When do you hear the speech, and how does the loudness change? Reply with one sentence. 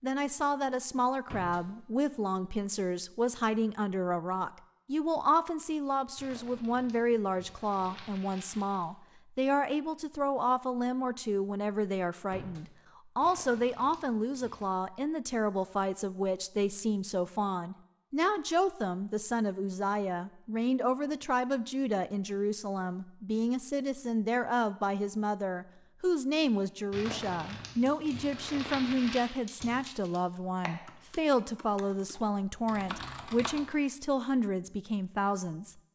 The speech can be heard from 0.0 to 35.8 s, at a steady volume.